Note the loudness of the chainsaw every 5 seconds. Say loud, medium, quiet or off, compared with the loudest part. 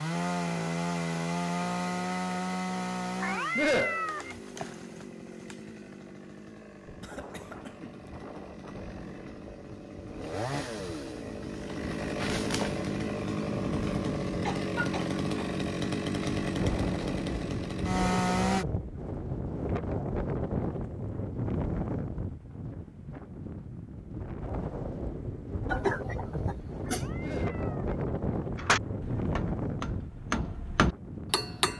loud, quiet, loud, loud, off, off, off.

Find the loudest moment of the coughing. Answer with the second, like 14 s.
26 s.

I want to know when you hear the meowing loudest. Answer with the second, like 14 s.
4 s.